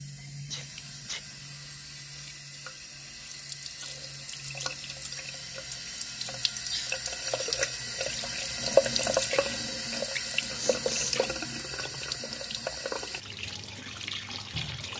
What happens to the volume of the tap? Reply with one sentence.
The loudness of the tap goes up, then down.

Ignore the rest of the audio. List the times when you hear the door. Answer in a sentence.
The door can't be heard in this clip.